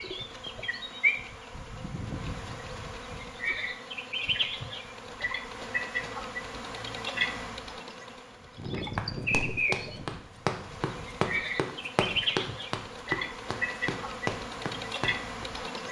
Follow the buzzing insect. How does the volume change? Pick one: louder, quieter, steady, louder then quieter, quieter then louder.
steady.